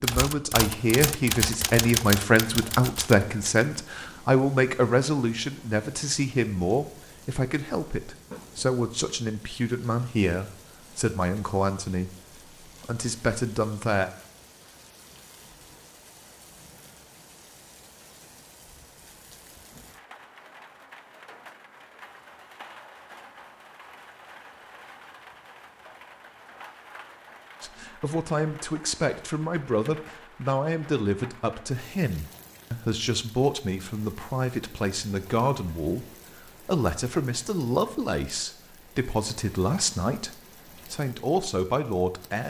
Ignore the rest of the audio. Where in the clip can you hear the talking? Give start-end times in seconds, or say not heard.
0.0-14.1, 27.6-42.4.